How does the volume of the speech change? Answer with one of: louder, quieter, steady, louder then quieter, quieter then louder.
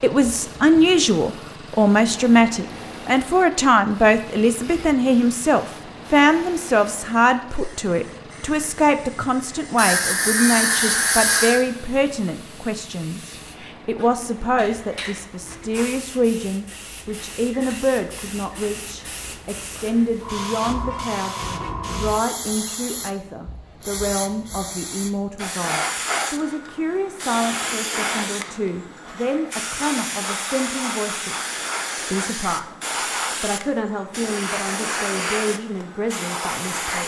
quieter.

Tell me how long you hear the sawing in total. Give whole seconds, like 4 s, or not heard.
2 s.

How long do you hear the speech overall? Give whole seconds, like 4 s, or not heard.
37 s.